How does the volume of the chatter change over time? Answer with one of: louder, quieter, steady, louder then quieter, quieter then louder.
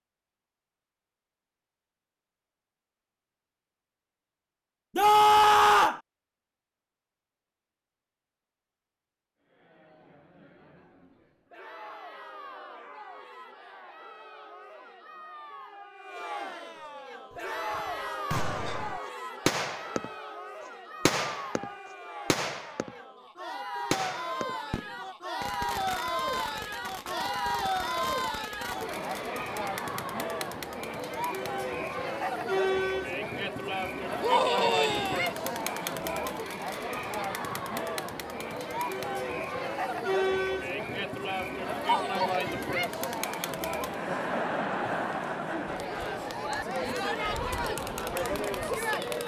louder.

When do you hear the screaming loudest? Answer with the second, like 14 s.
5 s.